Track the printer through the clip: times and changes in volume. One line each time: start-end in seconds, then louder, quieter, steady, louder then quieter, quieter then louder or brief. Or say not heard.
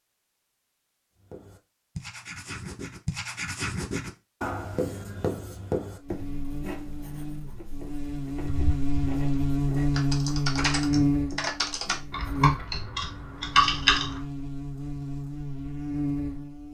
not heard.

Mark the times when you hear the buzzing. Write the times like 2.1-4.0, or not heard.
6.0-16.6.